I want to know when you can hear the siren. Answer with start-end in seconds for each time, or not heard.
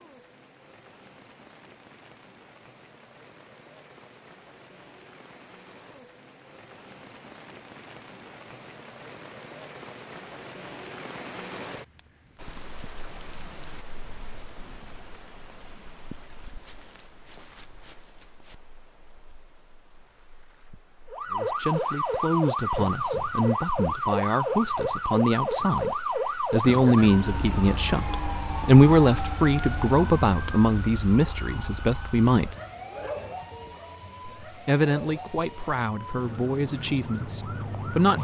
21.1-38.1.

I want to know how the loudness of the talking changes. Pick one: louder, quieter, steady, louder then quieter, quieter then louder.
louder then quieter.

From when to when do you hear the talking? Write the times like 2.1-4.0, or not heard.
21.3-32.5, 34.5-38.1.